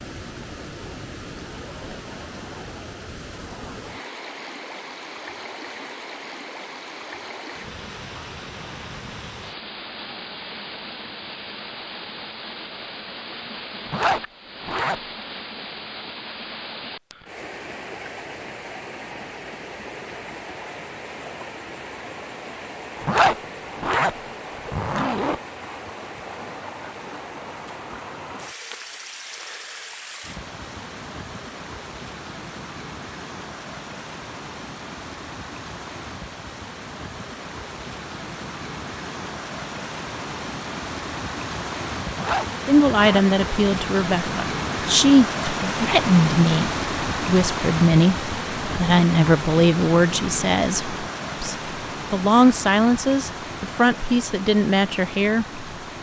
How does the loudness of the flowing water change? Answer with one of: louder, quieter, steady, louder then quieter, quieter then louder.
louder.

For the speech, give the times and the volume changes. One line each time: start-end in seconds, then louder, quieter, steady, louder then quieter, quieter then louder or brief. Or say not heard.
42.6-55.9 steady.